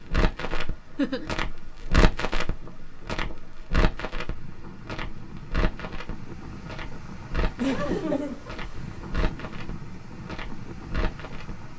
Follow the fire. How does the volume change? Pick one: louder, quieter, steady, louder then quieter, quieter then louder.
quieter.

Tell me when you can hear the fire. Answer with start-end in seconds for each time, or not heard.
0.0-11.7.